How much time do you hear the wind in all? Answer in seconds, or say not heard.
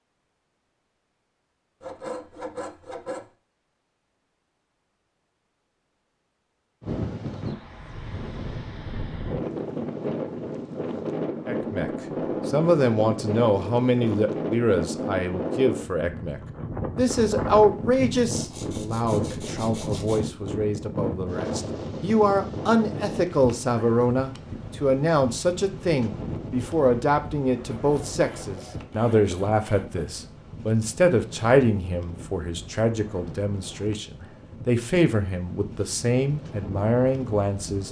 31 s.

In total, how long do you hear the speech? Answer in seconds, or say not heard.
26 s.